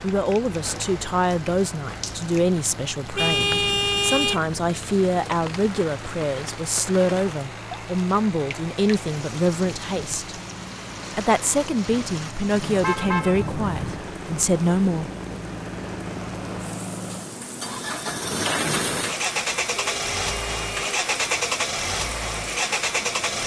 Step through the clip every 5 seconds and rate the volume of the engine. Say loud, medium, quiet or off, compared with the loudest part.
quiet, quiet, quiet, loud, loud.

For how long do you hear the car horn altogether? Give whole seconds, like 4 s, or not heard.
4 s.